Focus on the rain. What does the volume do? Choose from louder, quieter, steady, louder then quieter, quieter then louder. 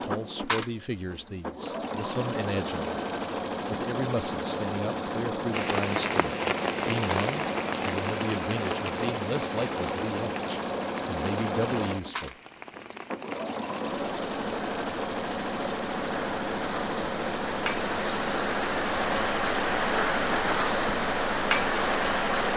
quieter then louder.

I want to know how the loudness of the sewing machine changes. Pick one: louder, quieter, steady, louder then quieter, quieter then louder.
steady.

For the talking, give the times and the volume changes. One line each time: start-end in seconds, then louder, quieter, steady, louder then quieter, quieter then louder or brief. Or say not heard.
0.0-3.0 brief
3.7-12.3 steady.